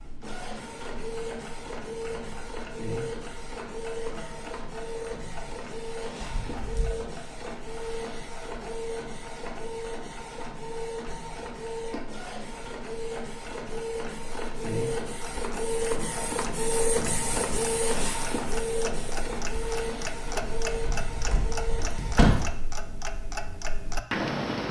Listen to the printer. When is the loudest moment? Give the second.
17 s.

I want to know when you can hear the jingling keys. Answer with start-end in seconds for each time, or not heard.
6.2-7.0, 20.8-22.4.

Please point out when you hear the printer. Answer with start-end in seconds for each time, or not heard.
0.0-22.3.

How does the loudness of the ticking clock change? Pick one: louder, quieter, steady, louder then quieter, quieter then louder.
louder.